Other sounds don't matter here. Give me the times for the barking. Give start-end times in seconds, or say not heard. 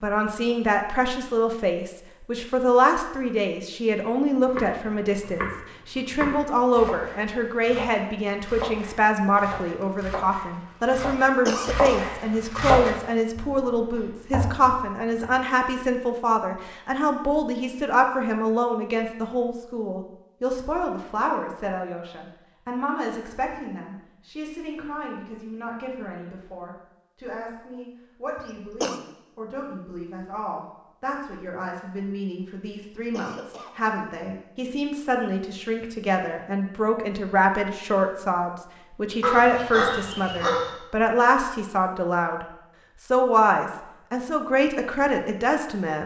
39.2-40.7.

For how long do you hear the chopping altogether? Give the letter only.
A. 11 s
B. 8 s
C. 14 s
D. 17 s
A.